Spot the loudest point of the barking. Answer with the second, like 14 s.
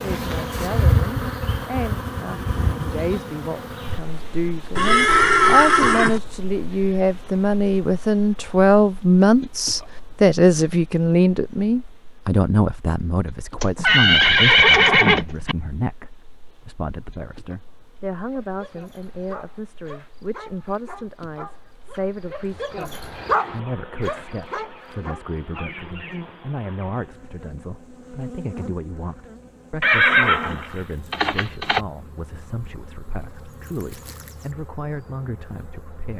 23 s.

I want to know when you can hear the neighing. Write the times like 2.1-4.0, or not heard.
4.8-6.2, 13.6-15.6, 29.8-31.8.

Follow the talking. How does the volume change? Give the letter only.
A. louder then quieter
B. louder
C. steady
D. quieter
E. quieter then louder
A.